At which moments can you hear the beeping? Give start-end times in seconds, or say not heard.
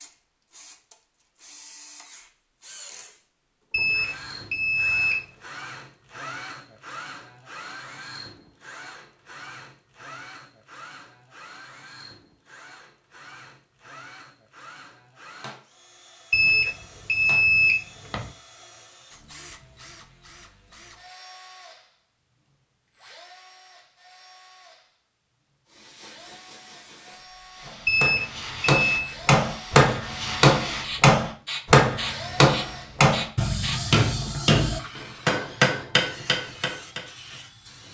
3.7-5.2, 16.3-18.2, 27.9-29.1.